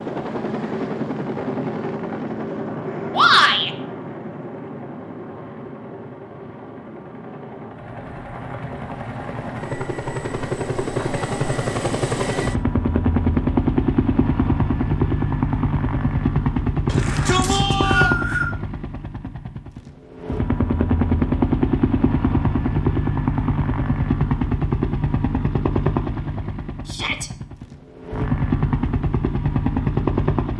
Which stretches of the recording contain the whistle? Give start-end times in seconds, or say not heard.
17.4-18.4.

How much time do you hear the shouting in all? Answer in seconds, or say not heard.
2 s.